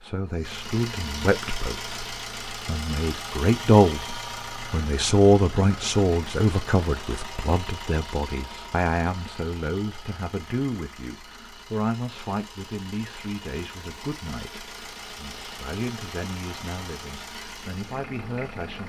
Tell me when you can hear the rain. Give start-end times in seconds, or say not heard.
not heard.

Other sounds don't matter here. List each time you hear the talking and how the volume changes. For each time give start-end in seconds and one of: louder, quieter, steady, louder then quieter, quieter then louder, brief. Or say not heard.
0.0-18.8 quieter.